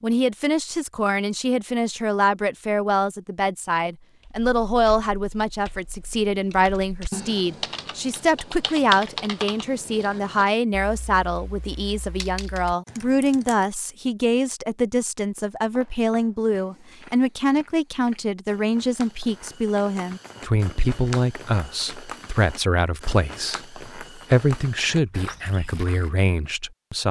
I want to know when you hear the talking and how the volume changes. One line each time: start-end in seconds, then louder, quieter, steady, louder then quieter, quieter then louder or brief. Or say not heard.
0.0-27.0 steady.